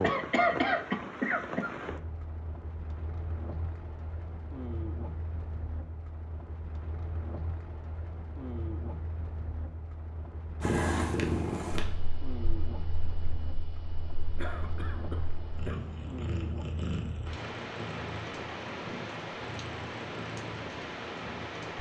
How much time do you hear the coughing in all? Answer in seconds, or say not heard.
3 s.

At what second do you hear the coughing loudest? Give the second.
1 s.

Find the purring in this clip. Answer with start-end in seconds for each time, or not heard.
10.6-21.7.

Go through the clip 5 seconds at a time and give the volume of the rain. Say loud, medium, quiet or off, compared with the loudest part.
loud, medium, medium, loud, loud.